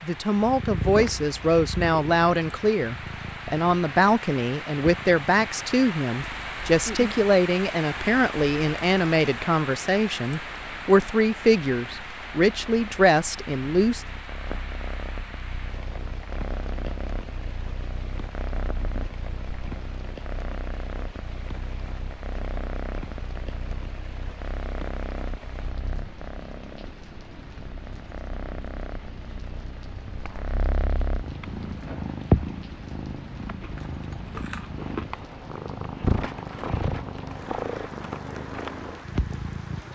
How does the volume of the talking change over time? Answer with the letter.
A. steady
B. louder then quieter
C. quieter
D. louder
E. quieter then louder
A.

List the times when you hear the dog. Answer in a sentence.
You can't hear the dog here.